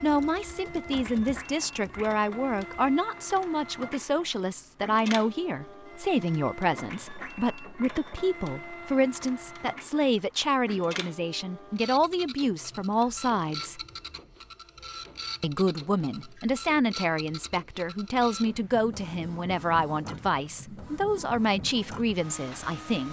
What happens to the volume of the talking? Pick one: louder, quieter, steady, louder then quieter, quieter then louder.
steady.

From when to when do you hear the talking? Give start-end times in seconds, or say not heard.
0.0-13.8, 15.4-23.0.